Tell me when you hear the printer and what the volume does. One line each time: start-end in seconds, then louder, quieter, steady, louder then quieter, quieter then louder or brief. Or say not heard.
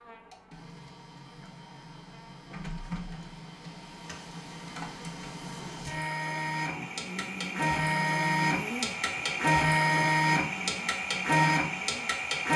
0.0-12.5 louder.